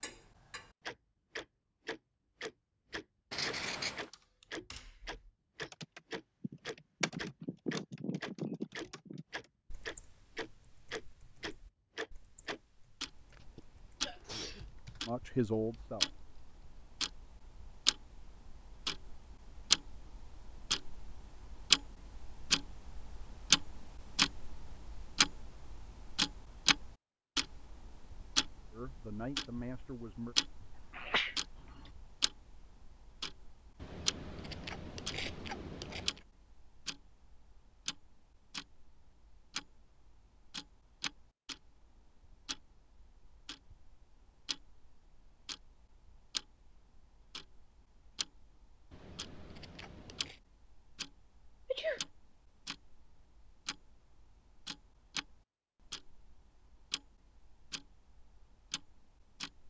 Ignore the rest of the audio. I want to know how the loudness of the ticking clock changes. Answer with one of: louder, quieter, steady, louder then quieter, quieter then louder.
louder then quieter.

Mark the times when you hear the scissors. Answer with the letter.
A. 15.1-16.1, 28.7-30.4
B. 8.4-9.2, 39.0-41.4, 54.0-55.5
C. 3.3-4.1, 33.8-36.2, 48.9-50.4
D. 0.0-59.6
C.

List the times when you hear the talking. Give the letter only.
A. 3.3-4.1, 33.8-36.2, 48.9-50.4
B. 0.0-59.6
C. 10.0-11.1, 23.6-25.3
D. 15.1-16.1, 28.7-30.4
D.